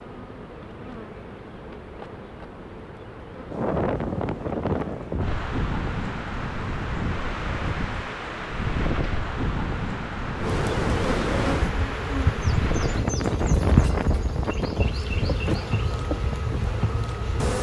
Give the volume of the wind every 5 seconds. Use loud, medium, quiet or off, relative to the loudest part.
loud, loud, loud, medium.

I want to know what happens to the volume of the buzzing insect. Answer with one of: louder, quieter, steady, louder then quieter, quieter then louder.
louder.